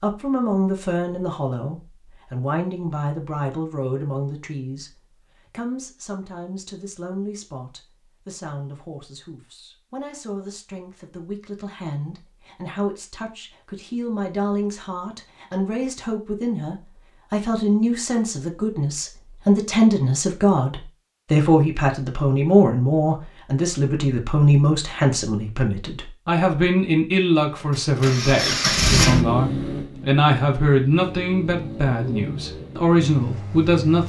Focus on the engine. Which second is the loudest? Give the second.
29 s.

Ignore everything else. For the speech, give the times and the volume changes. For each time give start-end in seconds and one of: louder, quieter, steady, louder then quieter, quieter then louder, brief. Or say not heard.
0.0-34.0 quieter then louder.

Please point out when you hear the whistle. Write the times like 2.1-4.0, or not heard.
not heard.